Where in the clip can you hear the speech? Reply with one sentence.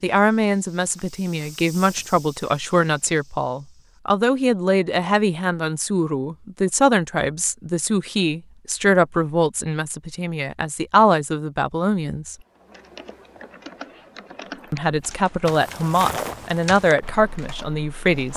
You can hear the speech from 0.0 to 12.3 s and from 14.7 to 18.3 s.